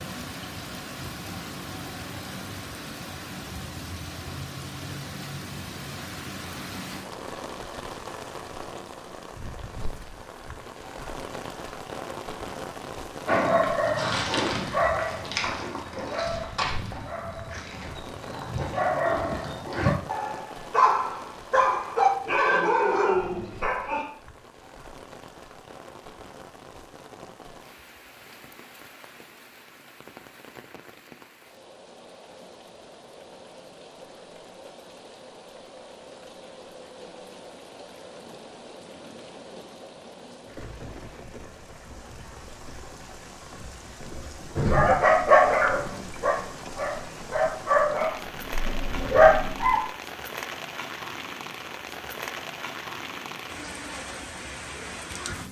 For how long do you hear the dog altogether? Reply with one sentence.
You can hear the dog for 16 seconds altogether.